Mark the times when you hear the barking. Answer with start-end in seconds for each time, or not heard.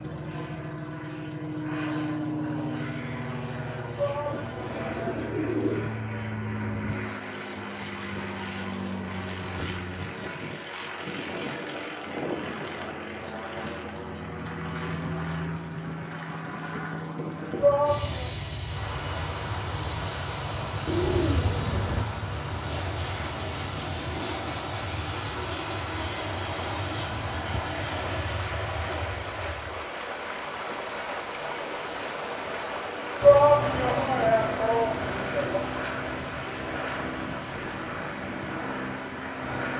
not heard.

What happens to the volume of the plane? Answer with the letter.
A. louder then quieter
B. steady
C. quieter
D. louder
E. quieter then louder
B.